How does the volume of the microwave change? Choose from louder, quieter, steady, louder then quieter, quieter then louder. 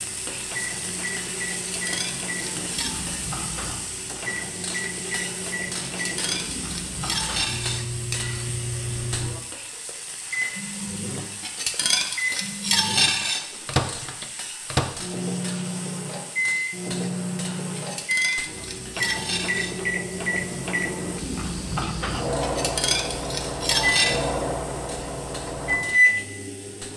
louder.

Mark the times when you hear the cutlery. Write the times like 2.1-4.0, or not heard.
1.7-3.0, 6.0-8.3, 11.4-13.8, 17.8-19.8, 22.4-24.3.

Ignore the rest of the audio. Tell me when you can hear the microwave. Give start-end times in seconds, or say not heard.
0.0-26.9.